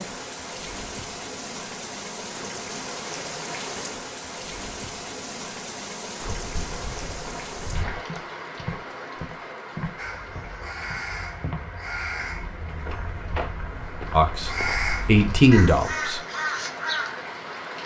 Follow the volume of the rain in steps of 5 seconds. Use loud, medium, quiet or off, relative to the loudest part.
loud, loud, medium, loud.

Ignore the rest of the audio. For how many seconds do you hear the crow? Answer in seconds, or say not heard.
7 s.